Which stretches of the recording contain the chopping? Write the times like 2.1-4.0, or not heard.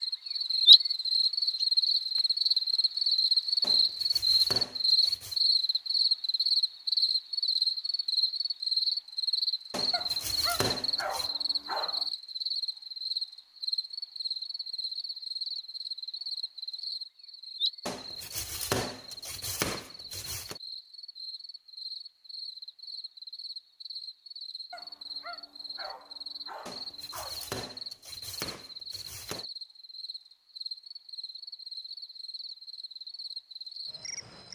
3.6-5.4, 9.7-11.3, 17.9-20.6, 26.6-29.4.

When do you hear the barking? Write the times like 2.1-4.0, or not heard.
9.9-12.1, 24.7-27.6.